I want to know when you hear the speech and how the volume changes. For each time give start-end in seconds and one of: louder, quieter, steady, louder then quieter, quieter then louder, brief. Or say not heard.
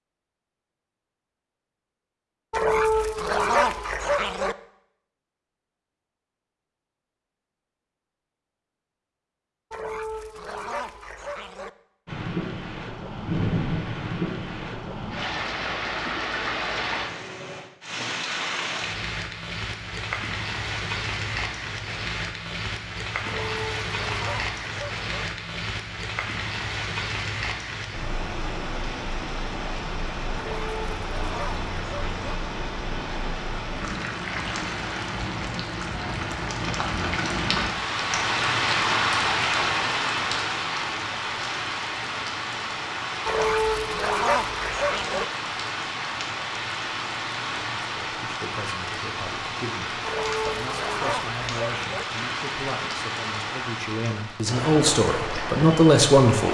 47.8-56.4 louder.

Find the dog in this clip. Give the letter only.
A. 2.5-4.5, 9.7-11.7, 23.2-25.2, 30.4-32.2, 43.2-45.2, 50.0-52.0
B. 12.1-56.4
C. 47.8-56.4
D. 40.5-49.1
A.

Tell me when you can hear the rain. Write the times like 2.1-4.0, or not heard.
12.1-56.4.